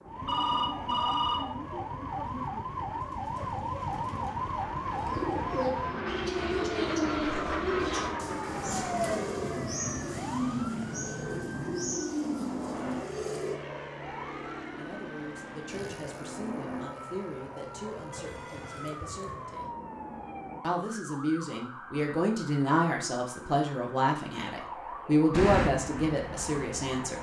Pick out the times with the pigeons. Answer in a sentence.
You can hear the pigeons from 3.0 to 13.6 s.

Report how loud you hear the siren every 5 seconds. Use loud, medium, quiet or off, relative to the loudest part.
loud, loud, medium, medium, medium, medium.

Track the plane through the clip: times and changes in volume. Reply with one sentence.
The plane can be heard from 0.0 to 20.6 s, getting louder then quieter; and briefly from 25.3 to 27.1 s.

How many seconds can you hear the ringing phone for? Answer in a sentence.
The ringing phone can be heard for 2 seconds in total.